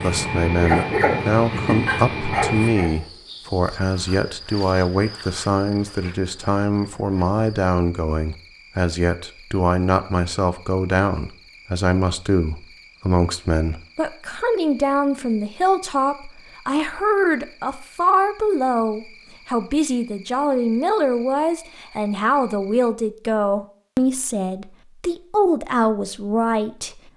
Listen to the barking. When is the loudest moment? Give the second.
1 s.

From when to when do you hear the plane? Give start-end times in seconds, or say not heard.
0.0-2.8.